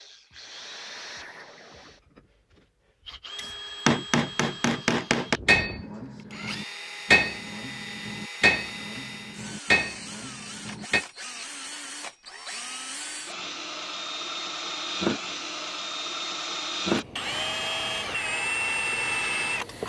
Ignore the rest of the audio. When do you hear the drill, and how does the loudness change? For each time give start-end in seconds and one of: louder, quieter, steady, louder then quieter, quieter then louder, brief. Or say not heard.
0.0-19.8 louder.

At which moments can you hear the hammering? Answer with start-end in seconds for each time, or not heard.
3.4-11.1.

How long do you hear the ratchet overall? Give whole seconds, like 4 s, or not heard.
not heard.